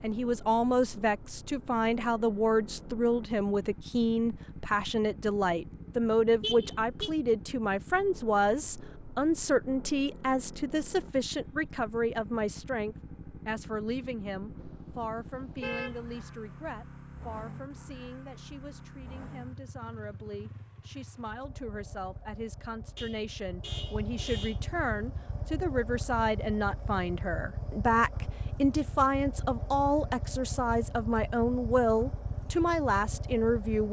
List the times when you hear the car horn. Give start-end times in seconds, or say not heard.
6.4-7.1, 14.6-16.1, 22.9-24.6.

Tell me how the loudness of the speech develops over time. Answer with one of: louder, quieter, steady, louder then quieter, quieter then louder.
quieter then louder.